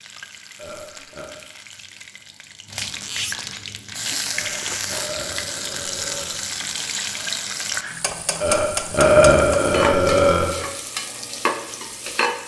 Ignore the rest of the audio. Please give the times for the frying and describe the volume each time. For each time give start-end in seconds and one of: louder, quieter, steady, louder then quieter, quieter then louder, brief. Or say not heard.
0.0-12.4 louder.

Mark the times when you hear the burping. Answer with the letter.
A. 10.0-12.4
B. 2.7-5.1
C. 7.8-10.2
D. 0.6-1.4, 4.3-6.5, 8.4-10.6
D.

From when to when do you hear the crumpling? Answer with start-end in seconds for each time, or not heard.
2.7-5.1.